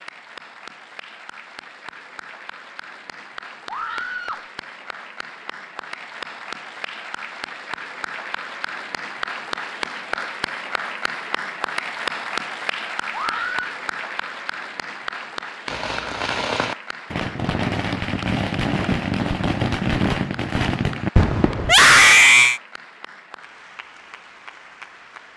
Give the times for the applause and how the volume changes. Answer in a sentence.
The applause can be heard from 0.0 to 25.3 s, getting louder then quieter.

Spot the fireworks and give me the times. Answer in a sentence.
The fireworks can be heard from 15.7 to 21.8 s.